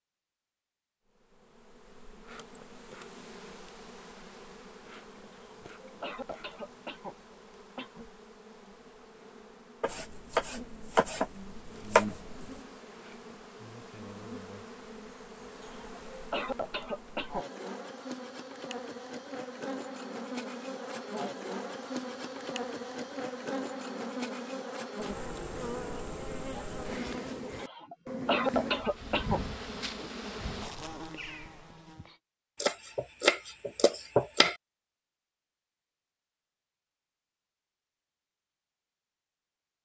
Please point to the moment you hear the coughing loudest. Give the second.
28 s.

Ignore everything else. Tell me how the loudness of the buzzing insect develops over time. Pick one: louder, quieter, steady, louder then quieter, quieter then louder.
louder.